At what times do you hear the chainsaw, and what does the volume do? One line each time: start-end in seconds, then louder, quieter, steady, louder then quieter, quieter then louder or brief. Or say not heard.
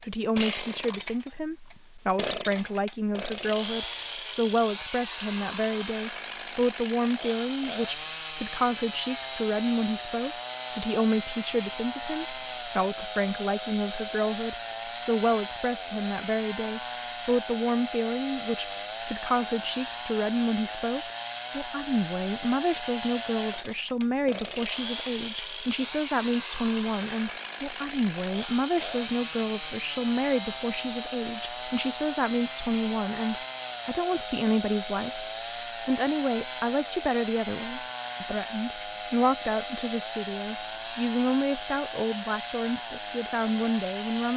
0.0-44.3 steady.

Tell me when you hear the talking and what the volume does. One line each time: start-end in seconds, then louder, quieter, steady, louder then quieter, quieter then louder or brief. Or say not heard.
0.0-44.3 steady.